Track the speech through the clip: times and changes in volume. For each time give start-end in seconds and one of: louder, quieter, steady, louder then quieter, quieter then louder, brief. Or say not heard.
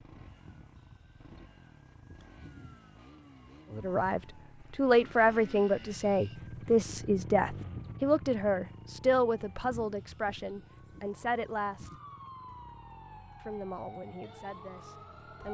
3.7-11.9 quieter
13.4-15.4 brief.